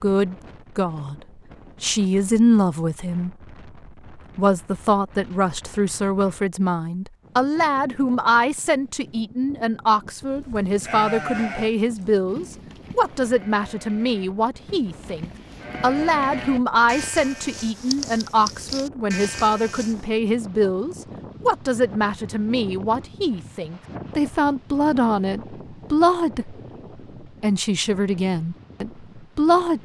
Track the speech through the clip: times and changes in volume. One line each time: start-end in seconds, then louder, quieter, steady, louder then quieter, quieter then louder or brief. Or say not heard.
0.0-1.1 brief
1.8-3.4 brief
4.2-26.6 steady
27.2-29.8 brief.